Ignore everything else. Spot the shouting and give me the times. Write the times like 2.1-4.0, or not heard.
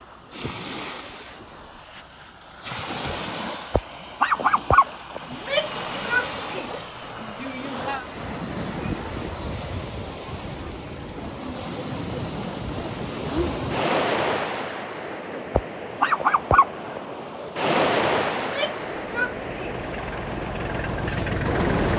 5.3-8.1, 18.4-19.8.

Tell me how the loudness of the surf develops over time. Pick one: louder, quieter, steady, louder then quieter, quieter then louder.
louder.